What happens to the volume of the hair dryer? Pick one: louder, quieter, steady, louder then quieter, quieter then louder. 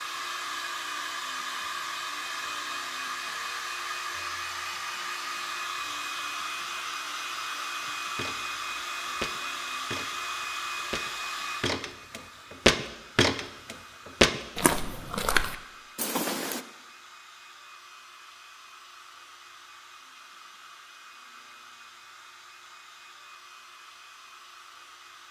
quieter.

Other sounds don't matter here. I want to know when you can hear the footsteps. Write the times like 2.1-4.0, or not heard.
7.8-16.6.